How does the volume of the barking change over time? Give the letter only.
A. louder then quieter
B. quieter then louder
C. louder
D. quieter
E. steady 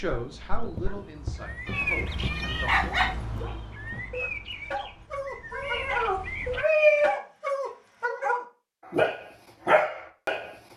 C.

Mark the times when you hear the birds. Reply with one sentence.
You can hear the birds from 0.1 to 6.7 s.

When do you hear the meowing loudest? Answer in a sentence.
The volume of the meowing peaks at 7 seconds.